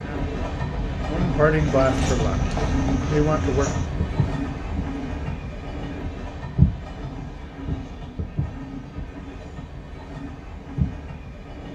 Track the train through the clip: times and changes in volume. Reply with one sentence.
You can hear the train from 0.0 to 11.6 s, getting quieter.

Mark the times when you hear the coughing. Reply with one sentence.
You can't hear the coughing here.